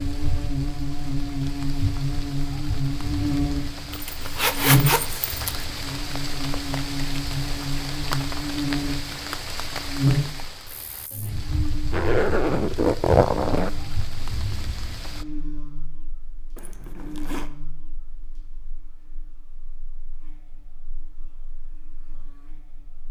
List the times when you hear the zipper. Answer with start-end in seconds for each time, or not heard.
3.9-5.7, 11.9-13.7, 16.6-17.5.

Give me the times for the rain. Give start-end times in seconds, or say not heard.
0.0-15.2.